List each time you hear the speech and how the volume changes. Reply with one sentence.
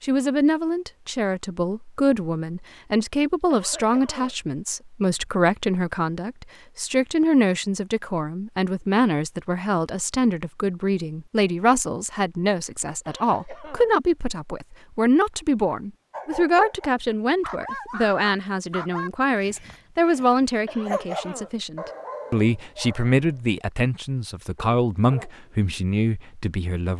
The speech can be heard from 0.0 to 26.9 s, at a steady volume.